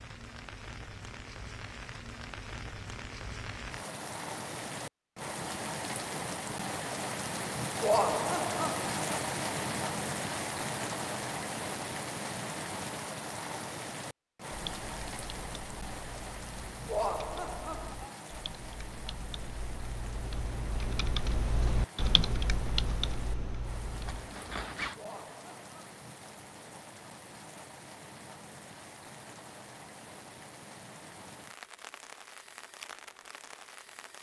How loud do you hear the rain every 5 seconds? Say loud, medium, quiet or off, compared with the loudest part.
medium, loud, loud, medium, quiet, quiet, quiet.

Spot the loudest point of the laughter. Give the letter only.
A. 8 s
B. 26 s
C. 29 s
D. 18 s
A.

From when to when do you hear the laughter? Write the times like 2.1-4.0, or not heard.
7.8-8.9, 16.9-18.1, 24.9-25.8.